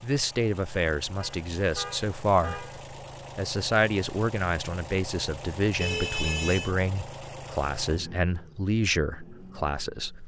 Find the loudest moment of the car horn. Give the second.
6 s.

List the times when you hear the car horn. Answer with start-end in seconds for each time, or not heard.
1.2-2.9, 5.8-6.7.